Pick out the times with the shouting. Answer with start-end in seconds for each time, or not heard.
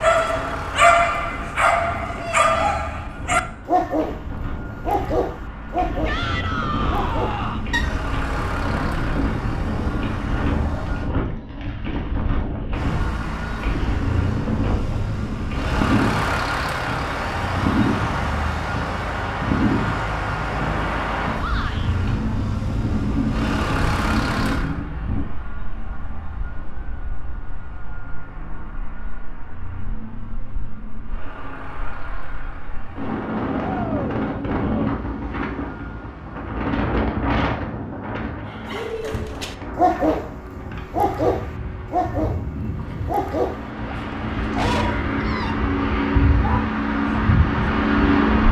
6.0-7.7, 21.4-21.9, 33.6-34.2.